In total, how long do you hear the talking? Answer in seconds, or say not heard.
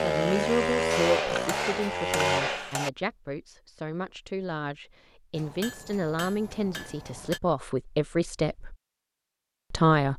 9 s.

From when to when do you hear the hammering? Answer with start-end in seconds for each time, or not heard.
0.9-2.9, 5.3-7.4.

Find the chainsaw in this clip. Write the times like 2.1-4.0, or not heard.
0.0-2.6.